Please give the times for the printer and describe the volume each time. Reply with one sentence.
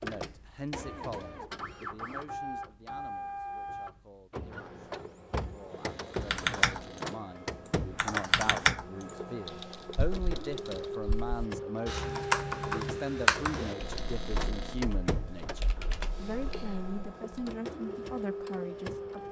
You can hear the printer from 0.0 to 19.2 s, at a steady volume.